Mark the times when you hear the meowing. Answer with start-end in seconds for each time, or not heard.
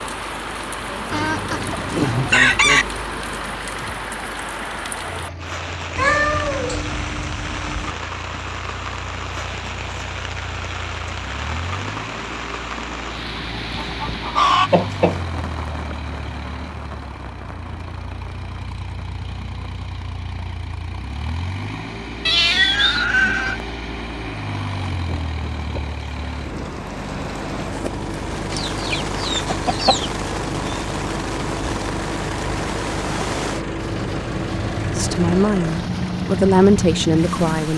6.0-8.0, 22.2-23.6.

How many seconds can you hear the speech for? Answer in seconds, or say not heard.
3 s.